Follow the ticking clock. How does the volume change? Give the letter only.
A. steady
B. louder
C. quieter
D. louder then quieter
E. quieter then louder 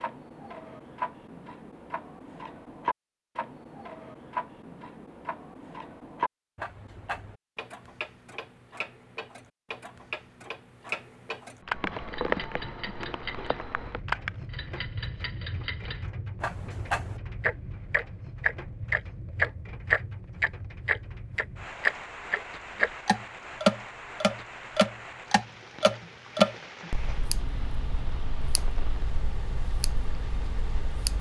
D.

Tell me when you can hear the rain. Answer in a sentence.
The rain can be heard from 11.6 to 31.1 s.